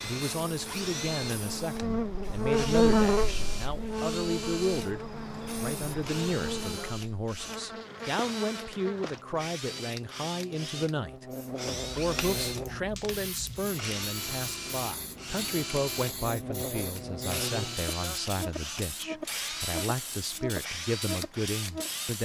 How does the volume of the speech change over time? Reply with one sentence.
The volume of the speech stays about the same.